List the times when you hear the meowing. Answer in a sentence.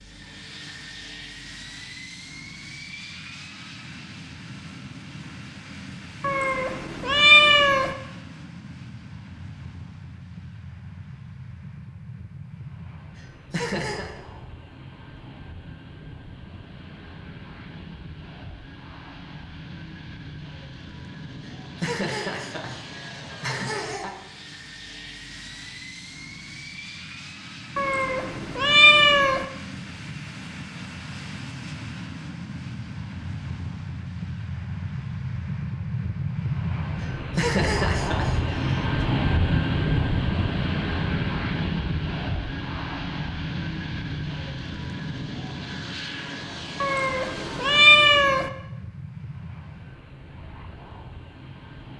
The meowing can be heard from 6.2 to 8.0 s, from 27.8 to 29.4 s and from 46.8 to 48.5 s.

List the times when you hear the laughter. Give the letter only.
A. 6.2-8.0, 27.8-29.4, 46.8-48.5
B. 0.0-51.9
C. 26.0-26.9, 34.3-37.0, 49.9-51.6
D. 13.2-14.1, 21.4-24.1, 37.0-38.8
D.